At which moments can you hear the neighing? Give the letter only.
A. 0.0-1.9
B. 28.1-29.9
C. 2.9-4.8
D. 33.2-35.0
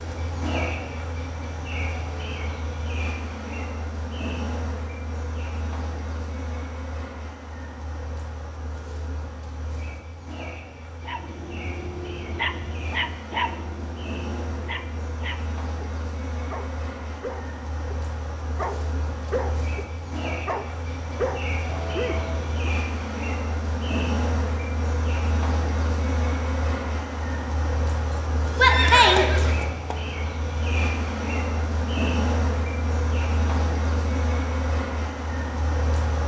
B.